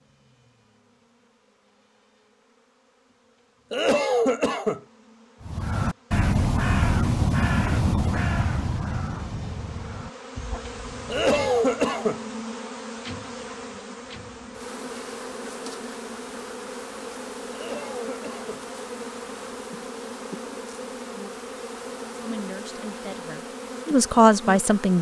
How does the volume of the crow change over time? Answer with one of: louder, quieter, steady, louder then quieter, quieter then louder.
quieter.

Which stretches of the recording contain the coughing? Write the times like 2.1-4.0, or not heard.
3.7-4.8, 11.1-12.2, 17.5-18.6.